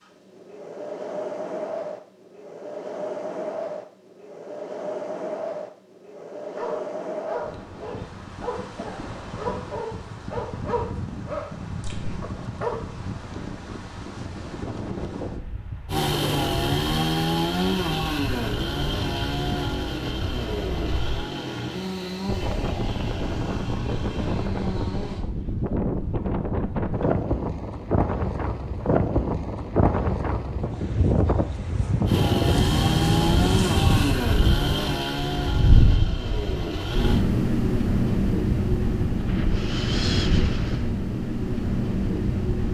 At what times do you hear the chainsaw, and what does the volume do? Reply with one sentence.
You can hear the chainsaw from 15.8 to 25.2 s, getting quieter; and from 32.0 to 37.2 s, getting quieter.